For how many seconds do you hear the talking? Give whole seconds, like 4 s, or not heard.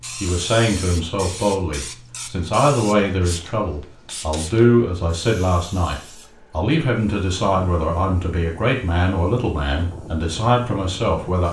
11 s.